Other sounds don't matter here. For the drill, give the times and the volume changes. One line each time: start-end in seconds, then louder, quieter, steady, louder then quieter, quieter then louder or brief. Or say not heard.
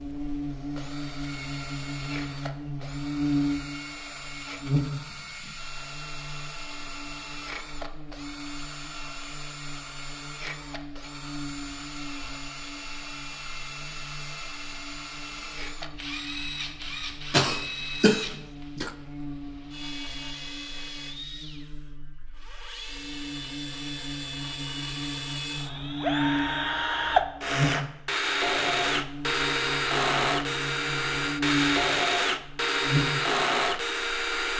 0.0-34.5 louder.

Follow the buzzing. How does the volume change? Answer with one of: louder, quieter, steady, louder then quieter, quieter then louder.
quieter then louder.